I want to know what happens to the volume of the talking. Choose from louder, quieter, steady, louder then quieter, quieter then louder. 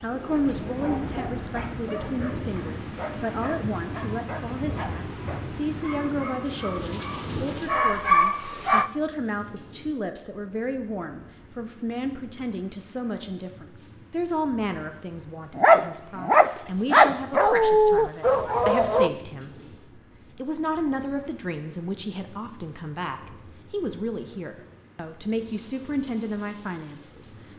steady.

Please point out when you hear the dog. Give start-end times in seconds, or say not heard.
0.0-8.9, 15.6-19.1.